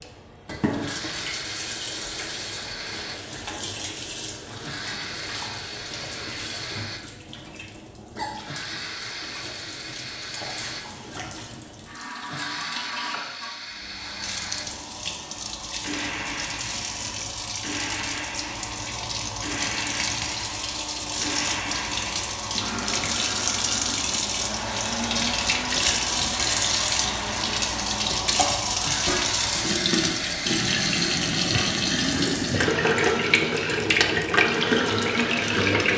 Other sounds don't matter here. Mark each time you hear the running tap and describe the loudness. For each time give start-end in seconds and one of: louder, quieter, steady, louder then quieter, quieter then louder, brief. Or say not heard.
0.0-35.9 louder.